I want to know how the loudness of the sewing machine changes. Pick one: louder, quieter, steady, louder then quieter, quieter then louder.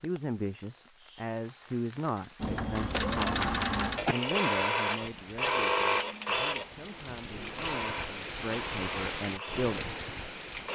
quieter.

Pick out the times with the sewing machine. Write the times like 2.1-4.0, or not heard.
2.4-10.7.